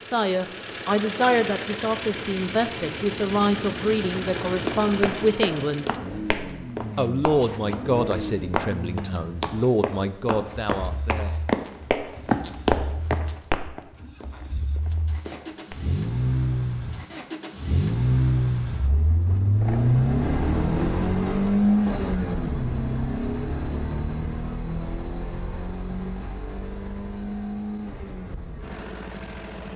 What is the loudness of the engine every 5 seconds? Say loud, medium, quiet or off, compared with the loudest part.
medium, medium, quiet, loud, loud, medium.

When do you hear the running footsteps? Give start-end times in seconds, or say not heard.
4.2-15.8.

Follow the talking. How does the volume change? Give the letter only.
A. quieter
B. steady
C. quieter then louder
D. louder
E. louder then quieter
B.